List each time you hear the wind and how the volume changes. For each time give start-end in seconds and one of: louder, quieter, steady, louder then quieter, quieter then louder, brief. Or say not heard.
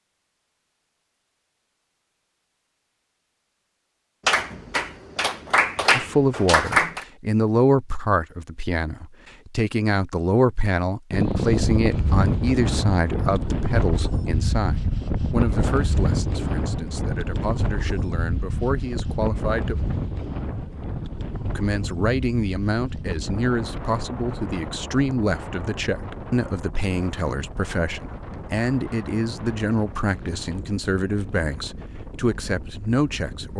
11.1-33.5 quieter.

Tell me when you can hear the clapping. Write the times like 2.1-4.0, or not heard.
4.2-7.0.